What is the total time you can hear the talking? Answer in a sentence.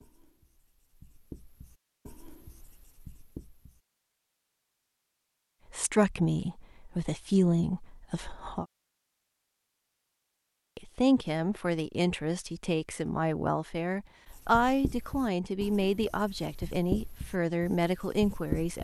You can hear the talking for 11 seconds altogether.